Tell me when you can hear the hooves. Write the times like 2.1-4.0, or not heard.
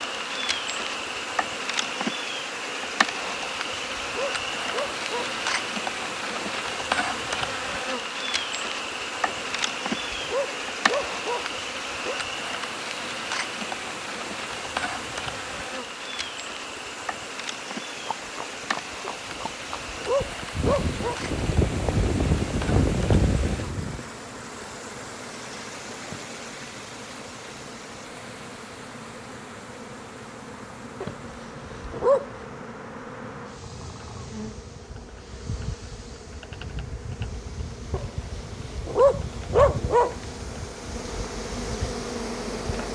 17.9-24.0.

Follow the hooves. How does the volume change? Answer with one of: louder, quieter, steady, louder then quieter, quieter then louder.
louder.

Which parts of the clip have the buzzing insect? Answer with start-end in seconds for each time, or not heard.
0.0-42.8.